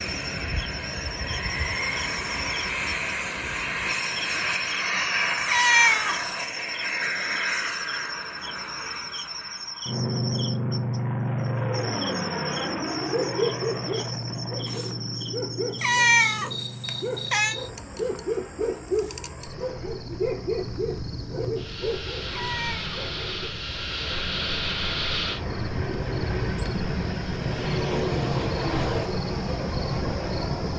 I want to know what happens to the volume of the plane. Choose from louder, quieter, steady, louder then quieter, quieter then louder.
quieter then louder.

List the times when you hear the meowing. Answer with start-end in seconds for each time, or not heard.
5.5-6.5, 15.8-17.6, 22.3-23.0.